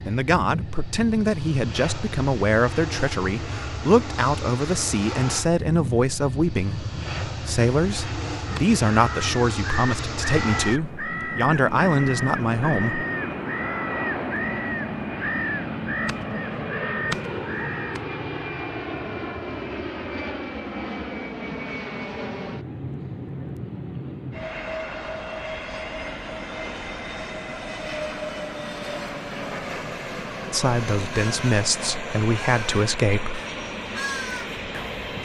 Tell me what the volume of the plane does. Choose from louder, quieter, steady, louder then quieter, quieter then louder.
steady.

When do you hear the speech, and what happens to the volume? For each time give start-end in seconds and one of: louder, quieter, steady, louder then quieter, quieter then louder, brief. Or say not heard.
0.1-13.1 steady
30.5-33.4 brief.